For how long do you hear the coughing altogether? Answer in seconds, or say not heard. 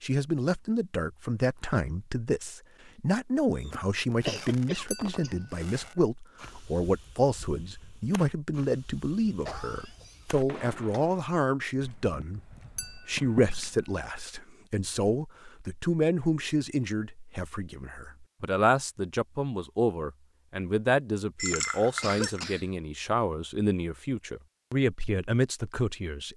5 s.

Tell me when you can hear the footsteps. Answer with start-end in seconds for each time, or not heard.
not heard.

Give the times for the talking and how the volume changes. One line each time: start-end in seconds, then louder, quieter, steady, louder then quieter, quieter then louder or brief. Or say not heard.
0.0-26.3 steady.